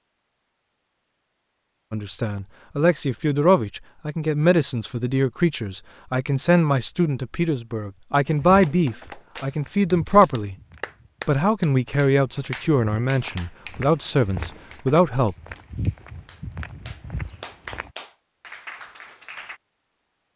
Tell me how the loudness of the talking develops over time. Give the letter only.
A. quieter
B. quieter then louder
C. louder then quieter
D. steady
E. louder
D.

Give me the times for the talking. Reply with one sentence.
You can hear the talking from 1.9 to 10.6 s and from 11.2 to 15.3 s.